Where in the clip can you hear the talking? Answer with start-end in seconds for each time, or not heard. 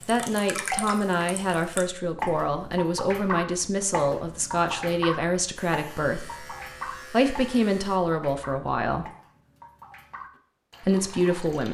0.1-9.1, 10.8-11.6.